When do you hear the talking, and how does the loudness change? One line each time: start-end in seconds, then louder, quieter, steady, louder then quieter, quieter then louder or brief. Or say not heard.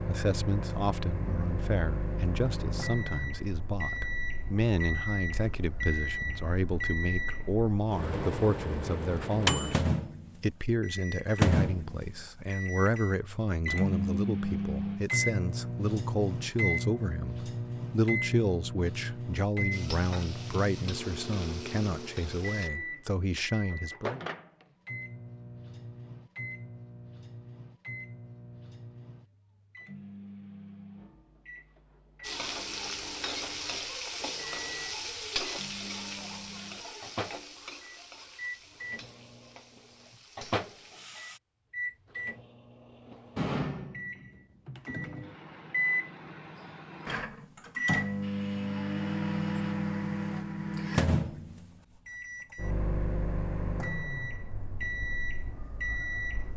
0.1-24.2 steady.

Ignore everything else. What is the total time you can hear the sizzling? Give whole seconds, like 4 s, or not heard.
12 s.